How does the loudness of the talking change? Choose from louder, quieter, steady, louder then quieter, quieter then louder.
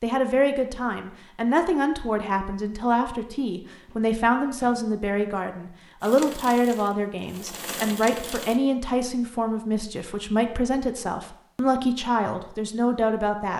steady.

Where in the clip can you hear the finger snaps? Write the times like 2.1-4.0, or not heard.
not heard.